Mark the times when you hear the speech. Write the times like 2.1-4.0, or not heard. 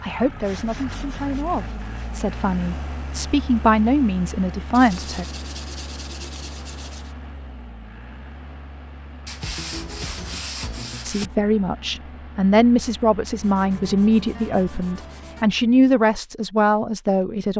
0.0-5.2, 11.0-17.5.